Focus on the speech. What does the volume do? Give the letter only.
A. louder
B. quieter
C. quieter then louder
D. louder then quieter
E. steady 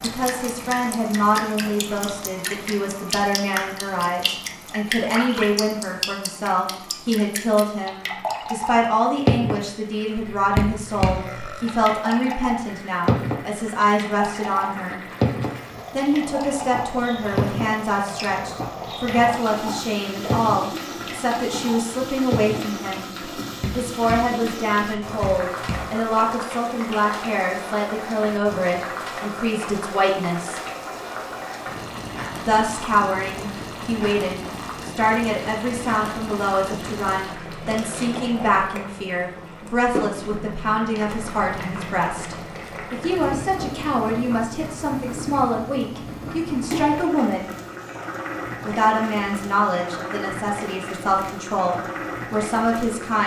E.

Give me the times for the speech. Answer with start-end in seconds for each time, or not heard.
0.0-15.0, 15.9-23.1, 23.8-30.6, 32.4-47.5, 48.6-53.2.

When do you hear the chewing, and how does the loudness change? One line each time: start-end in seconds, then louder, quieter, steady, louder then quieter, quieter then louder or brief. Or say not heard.
not heard.